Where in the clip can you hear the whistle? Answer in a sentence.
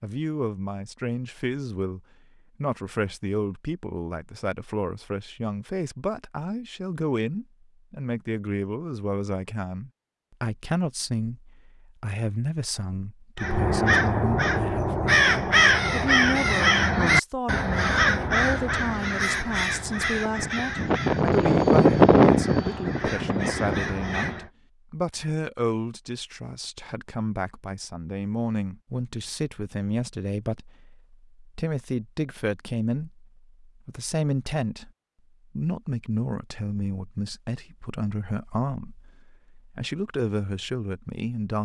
The whistle can't be heard in this clip.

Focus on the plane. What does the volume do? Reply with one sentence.
The volume of the plane goes up, then down.